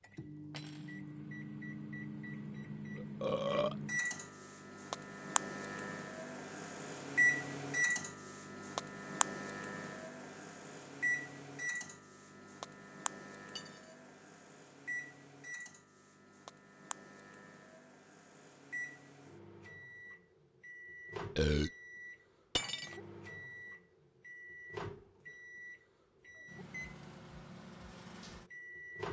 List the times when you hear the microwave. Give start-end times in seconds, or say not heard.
0.0-29.0.